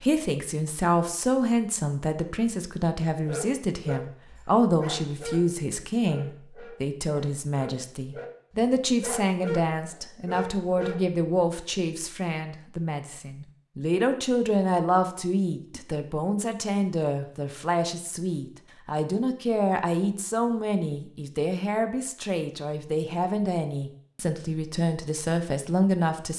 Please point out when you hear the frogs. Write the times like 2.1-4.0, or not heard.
not heard.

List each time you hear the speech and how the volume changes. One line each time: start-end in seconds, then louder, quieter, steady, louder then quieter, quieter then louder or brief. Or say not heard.
0.0-26.3 steady.